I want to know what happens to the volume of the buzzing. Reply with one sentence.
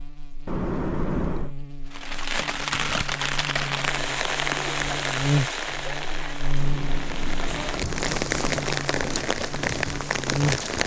The volume of the buzzing goes up, then down.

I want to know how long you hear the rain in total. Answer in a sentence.
You can hear the rain for 9 seconds altogether.